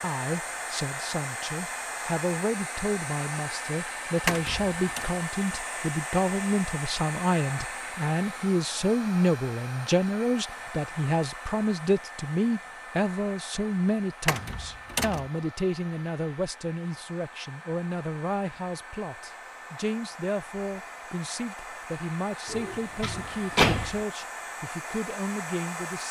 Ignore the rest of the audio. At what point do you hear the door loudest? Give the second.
24 s.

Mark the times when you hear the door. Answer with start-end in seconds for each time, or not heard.
4.2-5.0, 14.2-15.3, 22.4-24.1.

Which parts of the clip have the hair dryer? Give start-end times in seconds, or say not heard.
0.0-26.0.